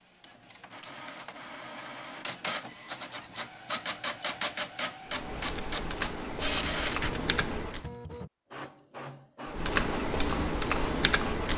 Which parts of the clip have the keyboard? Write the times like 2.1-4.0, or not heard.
5.0-7.9, 9.4-11.5.